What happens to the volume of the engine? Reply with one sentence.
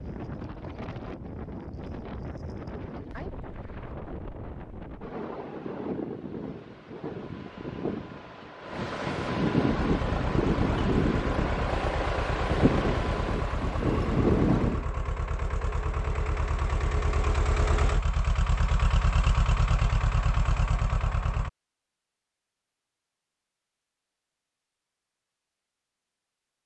The loudness of the engine goes up.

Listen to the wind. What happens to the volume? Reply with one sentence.
The volume of the wind goes up.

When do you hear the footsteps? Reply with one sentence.
You can't hear the footsteps here.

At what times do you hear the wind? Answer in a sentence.
You can hear the wind from 0.0 to 14.8 s.